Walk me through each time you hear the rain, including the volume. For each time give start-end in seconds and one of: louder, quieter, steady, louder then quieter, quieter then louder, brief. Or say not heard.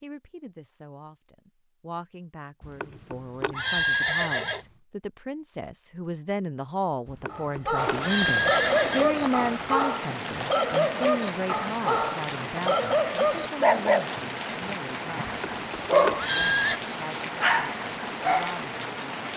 7.8-19.3 steady.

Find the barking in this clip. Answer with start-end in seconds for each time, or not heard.
7.3-18.6.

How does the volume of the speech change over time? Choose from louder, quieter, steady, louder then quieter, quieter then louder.
louder then quieter.